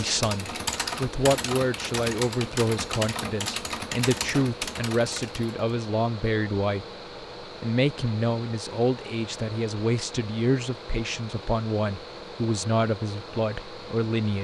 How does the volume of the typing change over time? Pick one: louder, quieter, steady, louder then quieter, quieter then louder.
steady.